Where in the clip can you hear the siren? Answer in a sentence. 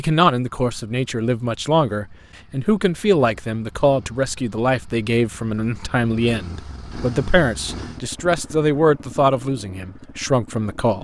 You can't hear the siren here.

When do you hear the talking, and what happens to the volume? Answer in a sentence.
The talking can be heard from 0.0 to 10.9 s, at a steady volume.